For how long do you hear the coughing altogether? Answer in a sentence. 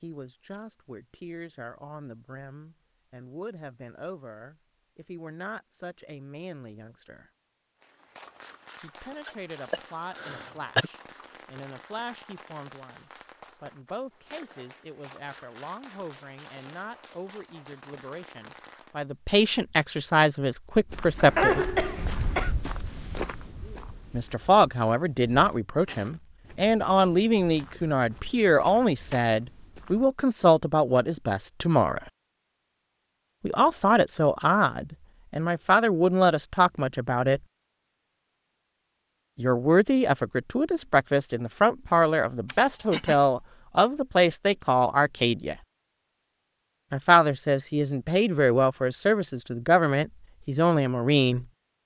You can hear the coughing for 4 seconds altogether.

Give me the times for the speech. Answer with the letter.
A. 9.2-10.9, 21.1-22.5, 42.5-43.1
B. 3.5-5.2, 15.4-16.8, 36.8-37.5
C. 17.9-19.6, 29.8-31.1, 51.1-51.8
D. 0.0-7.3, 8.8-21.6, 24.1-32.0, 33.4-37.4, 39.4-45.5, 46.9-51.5
D.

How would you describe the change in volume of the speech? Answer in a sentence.
The volume of the speech goes up.